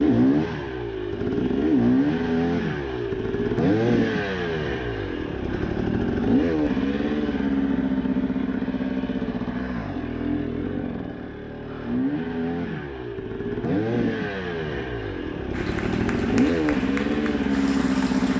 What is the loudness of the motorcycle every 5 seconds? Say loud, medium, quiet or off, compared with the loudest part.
loud, loud, medium, loud.